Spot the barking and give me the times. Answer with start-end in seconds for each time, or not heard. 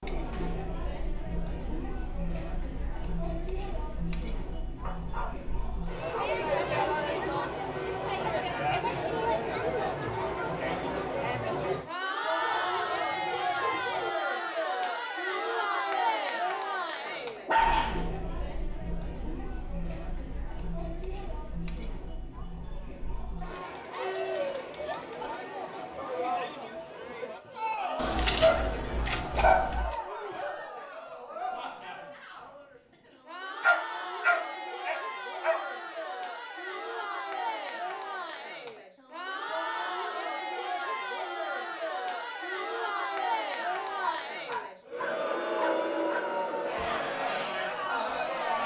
4.8-6.4, 12.4-14.1, 17.1-18.1, 27.9-29.9, 33.6-35.6, 43.6-46.2.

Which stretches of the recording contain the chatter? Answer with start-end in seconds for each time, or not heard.
0.0-48.6.